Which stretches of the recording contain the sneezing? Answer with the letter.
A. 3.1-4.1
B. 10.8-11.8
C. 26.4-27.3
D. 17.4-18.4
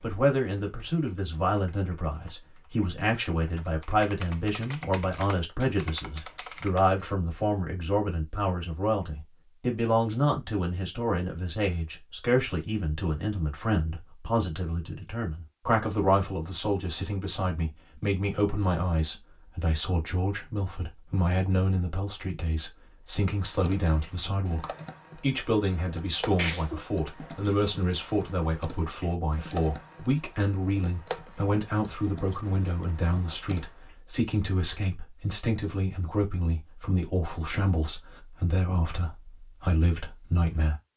C.